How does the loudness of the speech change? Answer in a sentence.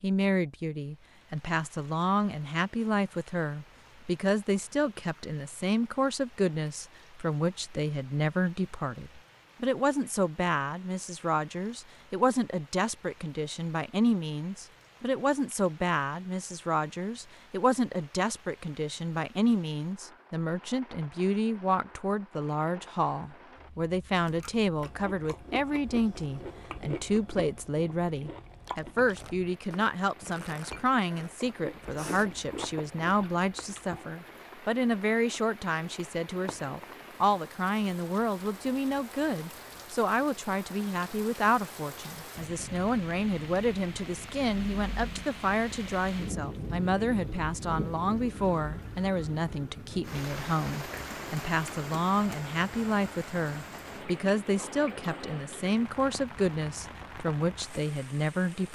The volume of the speech stays about the same.